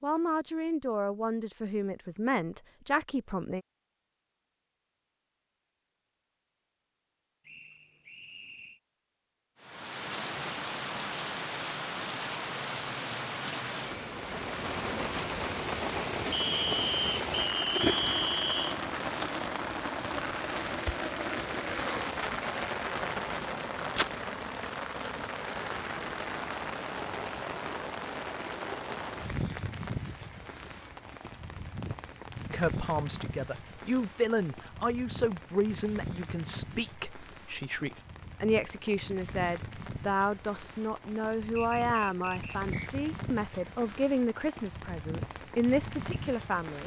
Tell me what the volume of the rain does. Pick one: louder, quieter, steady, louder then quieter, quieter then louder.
quieter.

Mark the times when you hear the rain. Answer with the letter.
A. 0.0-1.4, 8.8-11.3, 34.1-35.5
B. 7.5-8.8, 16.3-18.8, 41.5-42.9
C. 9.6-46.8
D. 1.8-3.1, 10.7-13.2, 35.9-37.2
C.